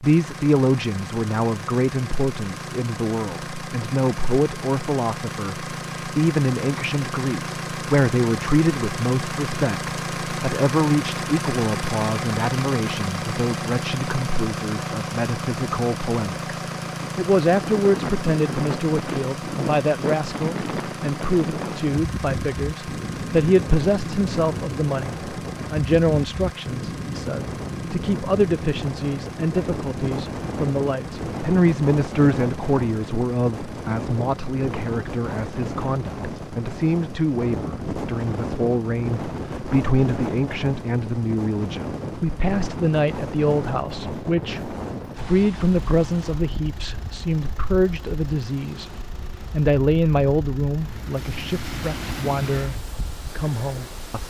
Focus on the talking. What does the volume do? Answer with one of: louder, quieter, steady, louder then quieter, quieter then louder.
steady.